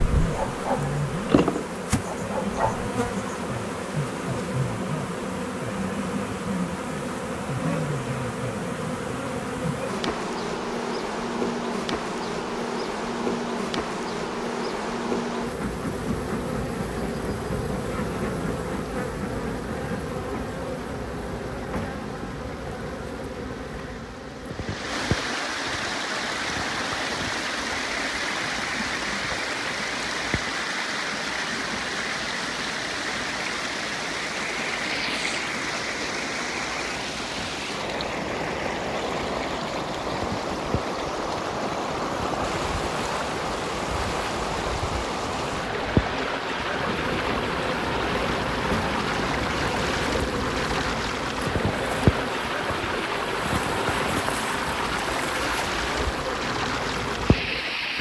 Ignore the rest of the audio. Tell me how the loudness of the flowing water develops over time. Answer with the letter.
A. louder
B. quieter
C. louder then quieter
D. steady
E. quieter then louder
A.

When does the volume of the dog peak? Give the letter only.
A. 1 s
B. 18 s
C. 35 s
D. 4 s
A.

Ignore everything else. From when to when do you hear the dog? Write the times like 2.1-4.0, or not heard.
0.0-2.9.